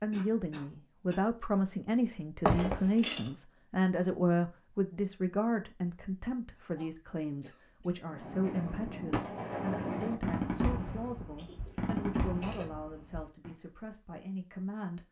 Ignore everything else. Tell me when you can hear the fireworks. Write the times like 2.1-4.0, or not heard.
8.1-13.6.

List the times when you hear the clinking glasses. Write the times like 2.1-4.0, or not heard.
2.5-3.3.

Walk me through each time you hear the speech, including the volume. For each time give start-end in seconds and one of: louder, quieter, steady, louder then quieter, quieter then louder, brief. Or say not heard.
0.0-15.0 quieter.